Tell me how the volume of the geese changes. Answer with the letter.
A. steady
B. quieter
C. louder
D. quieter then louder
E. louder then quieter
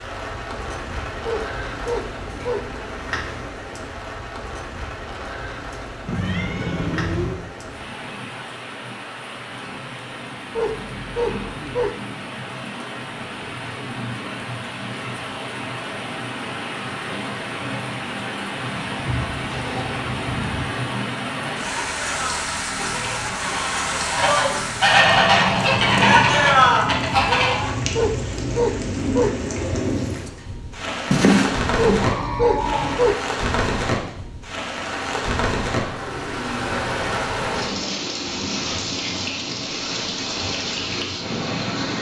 C.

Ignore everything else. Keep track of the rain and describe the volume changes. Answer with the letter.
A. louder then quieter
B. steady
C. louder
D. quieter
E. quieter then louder
C.